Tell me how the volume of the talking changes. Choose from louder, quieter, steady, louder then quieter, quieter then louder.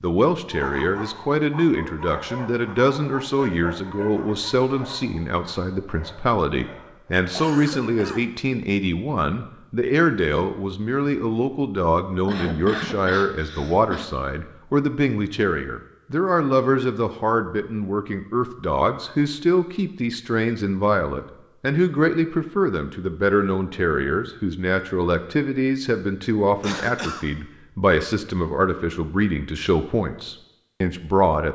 steady.